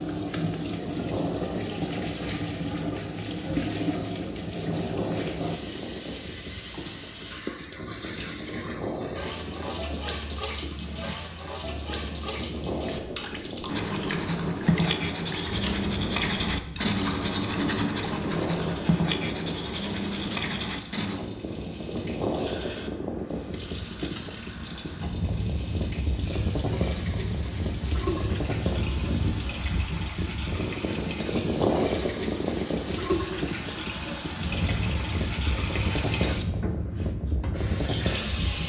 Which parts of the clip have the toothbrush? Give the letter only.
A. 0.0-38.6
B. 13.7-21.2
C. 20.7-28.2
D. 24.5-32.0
B.